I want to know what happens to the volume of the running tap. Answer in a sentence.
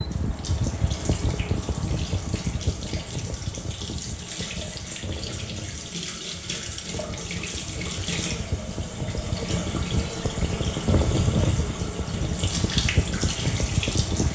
The loudness of the running tap goes up.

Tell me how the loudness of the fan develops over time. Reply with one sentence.
The loudness of the fan goes down, then up.